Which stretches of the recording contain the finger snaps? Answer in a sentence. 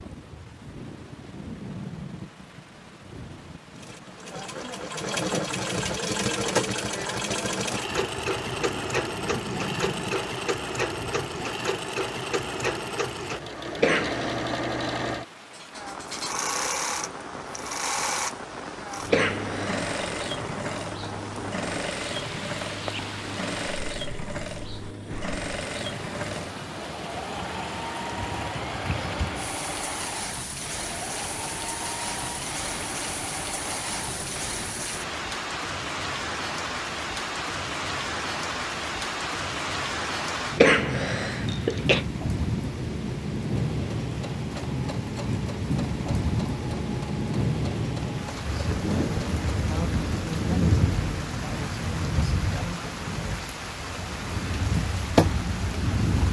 The finger snaps can't be heard in this clip.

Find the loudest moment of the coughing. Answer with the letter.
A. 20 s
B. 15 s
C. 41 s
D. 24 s
C.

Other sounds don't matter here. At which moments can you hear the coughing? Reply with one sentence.
The coughing can be heard from 13.8 to 14.4 s, from 19.1 to 19.9 s and from 40.5 to 42.0 s.